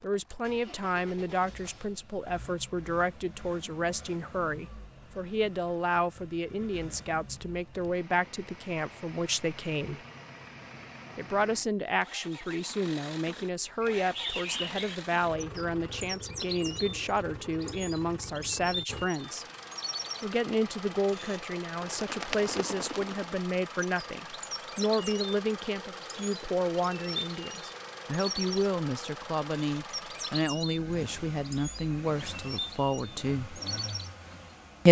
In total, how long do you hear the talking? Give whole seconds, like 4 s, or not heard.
32 s.